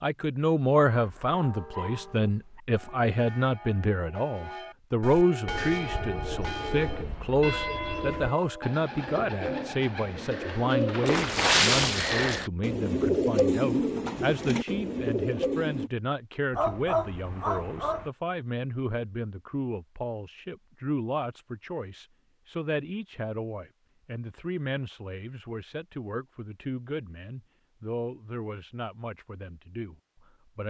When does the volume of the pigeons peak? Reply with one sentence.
The volume of the pigeons peaks at 13 seconds.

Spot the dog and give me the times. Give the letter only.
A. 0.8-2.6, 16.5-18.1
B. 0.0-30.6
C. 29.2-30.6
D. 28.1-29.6
A.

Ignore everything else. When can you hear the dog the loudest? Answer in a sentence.
The loudest moment of the dog is at 17 seconds.